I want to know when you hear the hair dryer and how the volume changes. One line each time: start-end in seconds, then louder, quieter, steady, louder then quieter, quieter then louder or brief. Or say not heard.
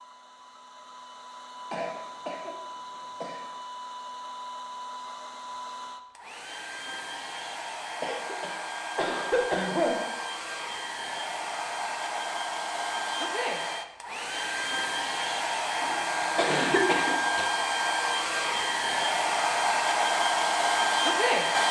0.0-21.6 louder.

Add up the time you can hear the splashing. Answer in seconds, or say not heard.
not heard.